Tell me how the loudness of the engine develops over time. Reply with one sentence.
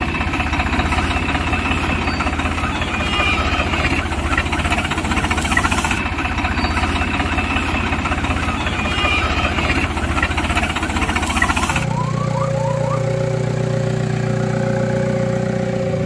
The volume of the engine stays about the same.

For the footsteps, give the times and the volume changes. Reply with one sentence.
You can't hear the footsteps here.